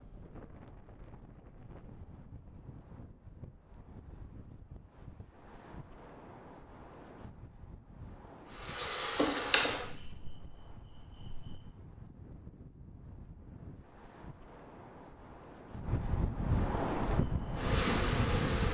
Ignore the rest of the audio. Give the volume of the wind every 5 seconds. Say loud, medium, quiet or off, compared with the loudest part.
quiet, quiet, quiet, loud.